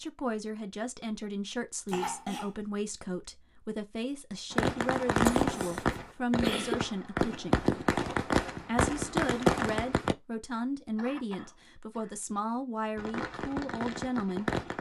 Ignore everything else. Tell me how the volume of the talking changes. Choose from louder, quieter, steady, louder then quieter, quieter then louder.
steady.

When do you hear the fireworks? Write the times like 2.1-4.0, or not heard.
4.5-10.2, 12.9-14.7.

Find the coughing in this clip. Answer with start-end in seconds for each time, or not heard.
1.9-2.5, 5.3-6.8, 10.9-12.2.